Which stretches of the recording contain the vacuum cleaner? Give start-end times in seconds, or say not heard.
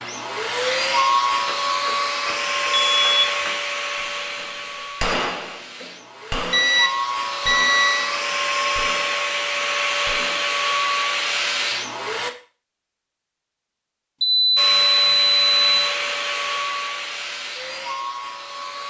0.0-12.3, 14.6-18.8.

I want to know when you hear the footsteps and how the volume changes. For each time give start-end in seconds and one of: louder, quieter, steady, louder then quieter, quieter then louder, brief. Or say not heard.
not heard.